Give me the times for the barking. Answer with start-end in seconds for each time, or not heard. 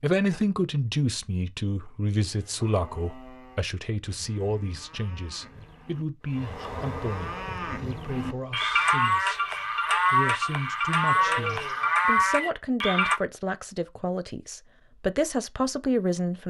not heard.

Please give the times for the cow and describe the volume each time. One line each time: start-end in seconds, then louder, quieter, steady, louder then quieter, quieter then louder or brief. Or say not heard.
2.2-13.2 louder.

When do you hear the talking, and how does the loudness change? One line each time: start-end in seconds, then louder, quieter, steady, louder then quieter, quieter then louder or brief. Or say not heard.
0.0-16.4 quieter then louder.